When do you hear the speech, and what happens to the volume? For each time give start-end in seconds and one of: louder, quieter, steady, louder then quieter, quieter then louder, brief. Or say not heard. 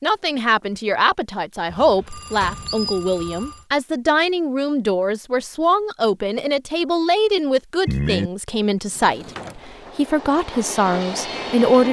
0.0-11.8 steady.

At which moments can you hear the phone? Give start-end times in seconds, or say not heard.
1.7-3.6, 7.8-8.3.